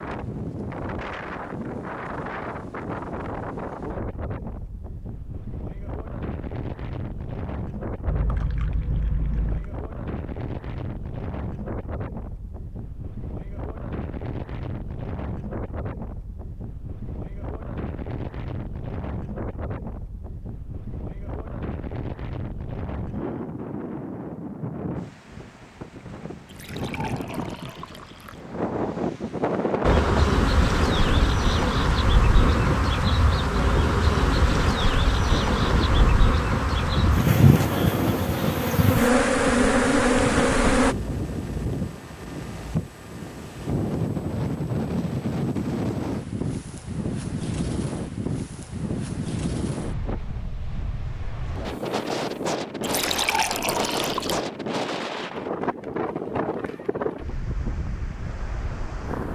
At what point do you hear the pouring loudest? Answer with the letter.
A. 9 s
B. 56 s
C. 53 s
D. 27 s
C.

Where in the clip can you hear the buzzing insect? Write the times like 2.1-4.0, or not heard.
29.8-41.0.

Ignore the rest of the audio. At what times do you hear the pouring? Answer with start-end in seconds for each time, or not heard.
8.1-9.7, 26.4-28.4, 52.8-54.4.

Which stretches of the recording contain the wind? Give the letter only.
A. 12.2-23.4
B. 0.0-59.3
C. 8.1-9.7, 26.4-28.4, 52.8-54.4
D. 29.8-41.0
B.